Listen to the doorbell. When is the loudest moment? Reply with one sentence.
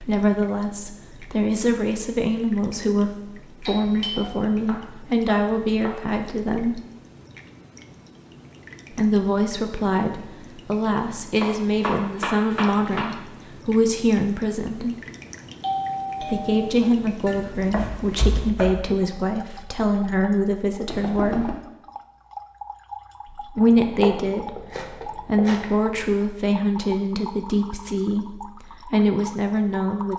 The volume of the doorbell peaks at 16 seconds.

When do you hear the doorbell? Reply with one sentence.
The doorbell can be heard from 3.6 to 4.2 s, from 15.6 to 16.7 s and from 20.9 to 21.6 s.